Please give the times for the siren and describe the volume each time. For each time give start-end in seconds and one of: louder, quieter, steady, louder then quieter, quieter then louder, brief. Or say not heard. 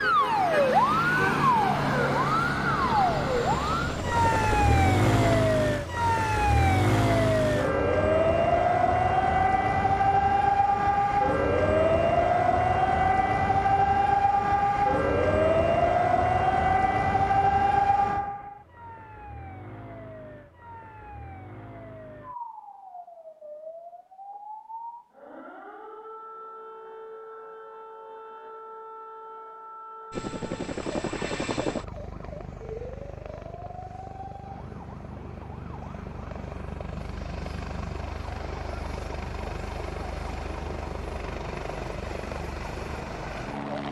0.0-43.7 quieter.